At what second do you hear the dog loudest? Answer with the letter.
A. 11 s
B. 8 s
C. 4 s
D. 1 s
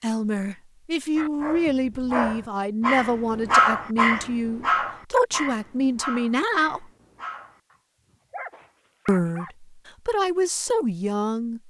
C.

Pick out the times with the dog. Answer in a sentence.
The dog can be heard from 1.1 to 9.5 s.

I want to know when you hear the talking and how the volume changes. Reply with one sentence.
The talking can be heard from 0.0 to 6.9 s, at a steady volume; and briefly from 9.1 to 11.6 s.